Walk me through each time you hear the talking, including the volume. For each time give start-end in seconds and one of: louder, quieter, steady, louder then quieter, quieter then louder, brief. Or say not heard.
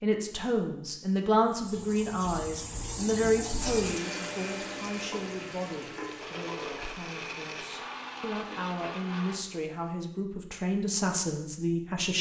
0.0-12.1 quieter then louder.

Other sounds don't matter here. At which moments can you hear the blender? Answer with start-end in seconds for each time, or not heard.
3.5-9.4.